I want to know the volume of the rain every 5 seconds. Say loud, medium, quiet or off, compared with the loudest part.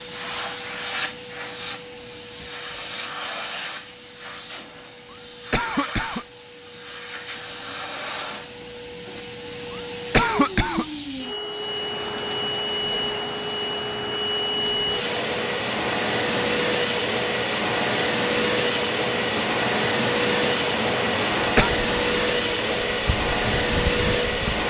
off, off, loud, loud, loud.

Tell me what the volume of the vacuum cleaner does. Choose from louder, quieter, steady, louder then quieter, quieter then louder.
louder.